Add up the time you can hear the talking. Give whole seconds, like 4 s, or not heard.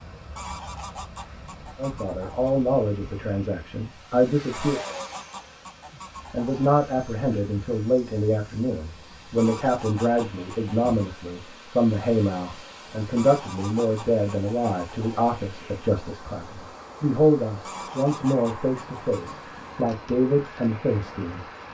18 s.